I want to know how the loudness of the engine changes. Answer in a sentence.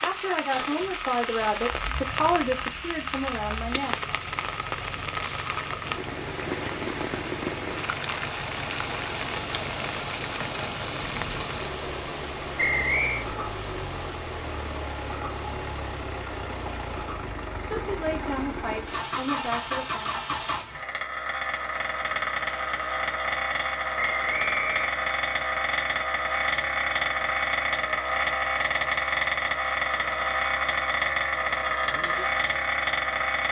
The loudness of the engine goes up.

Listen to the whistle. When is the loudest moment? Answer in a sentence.
The volume of the whistle peaks at 13 seconds.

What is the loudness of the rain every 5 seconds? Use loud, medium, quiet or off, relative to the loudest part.
loud, loud, loud, medium, off, off, off.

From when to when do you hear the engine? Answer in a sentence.
You can hear the engine from 0.0 to 33.4 s.